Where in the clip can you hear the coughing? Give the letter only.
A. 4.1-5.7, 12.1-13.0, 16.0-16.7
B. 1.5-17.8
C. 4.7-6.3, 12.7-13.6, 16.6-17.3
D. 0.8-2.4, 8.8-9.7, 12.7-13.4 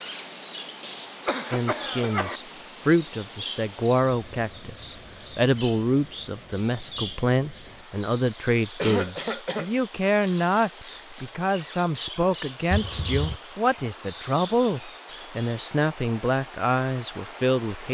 D.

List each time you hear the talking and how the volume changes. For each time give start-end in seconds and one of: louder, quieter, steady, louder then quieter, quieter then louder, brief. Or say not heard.
1.5-17.8 steady.